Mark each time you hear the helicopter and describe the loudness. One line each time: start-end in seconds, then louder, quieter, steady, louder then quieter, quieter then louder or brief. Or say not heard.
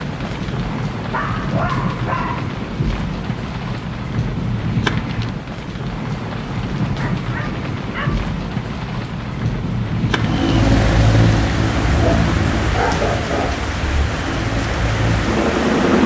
10.0-16.0 quieter then louder.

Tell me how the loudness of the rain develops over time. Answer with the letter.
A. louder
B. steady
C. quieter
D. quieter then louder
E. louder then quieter
B.